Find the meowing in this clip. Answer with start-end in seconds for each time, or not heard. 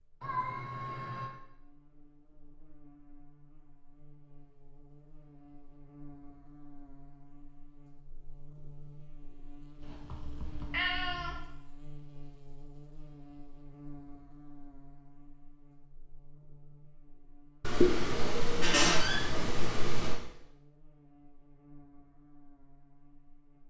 0.2-1.3, 9.8-11.4, 17.6-20.2.